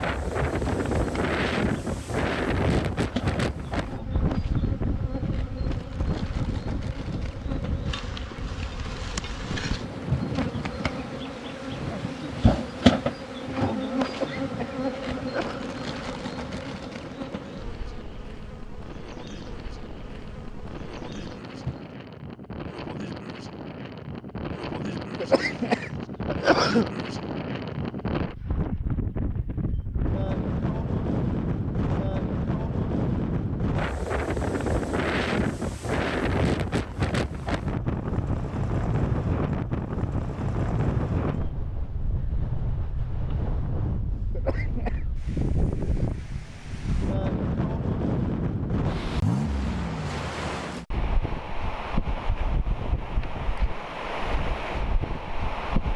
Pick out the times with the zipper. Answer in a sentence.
You can't hear the zipper here.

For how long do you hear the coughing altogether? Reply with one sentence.
The coughing can be heard for 4 seconds in total.